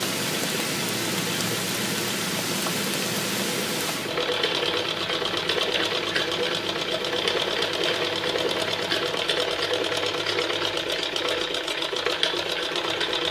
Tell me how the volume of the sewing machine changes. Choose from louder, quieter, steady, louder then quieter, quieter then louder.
louder.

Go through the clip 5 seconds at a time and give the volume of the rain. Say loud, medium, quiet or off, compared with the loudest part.
loud, medium, off.